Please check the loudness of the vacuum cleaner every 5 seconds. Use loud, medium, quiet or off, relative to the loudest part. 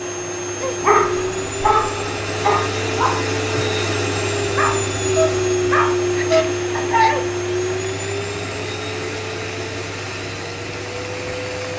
loud, loud, medium.